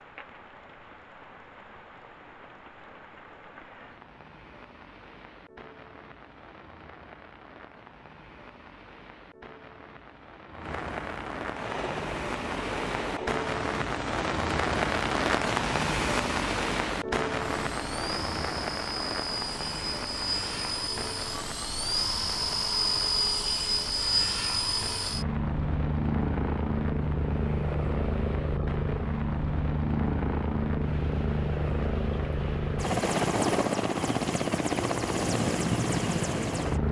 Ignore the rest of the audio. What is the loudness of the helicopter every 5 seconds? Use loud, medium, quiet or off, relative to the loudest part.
off, off, medium, medium, loud, loud, loud, loud.